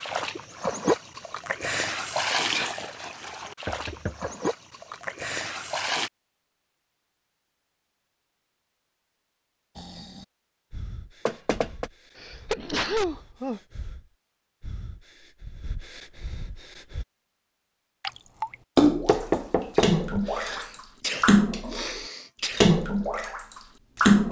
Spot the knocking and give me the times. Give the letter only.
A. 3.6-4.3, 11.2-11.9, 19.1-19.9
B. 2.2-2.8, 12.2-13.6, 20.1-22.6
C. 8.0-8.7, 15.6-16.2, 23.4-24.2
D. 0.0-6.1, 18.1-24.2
A.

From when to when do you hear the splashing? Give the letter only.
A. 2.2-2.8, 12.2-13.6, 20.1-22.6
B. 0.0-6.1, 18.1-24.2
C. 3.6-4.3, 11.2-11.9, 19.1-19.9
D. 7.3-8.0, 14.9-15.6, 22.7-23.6
B.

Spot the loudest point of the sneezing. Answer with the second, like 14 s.
13 s.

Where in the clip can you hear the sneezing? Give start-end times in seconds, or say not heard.
2.2-2.8, 12.2-13.6, 20.1-22.6.